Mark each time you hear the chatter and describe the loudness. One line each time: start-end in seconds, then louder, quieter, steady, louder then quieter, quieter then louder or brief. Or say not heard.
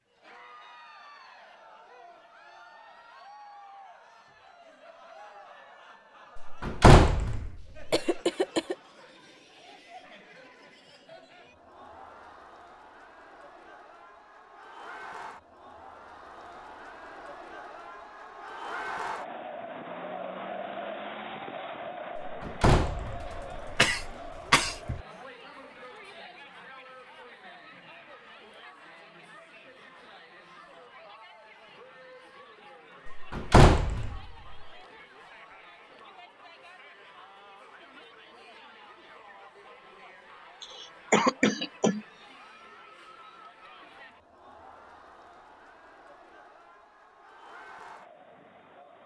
0.1-49.0 louder then quieter.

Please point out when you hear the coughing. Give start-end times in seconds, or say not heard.
7.9-8.8, 23.2-25.0, 40.6-42.0.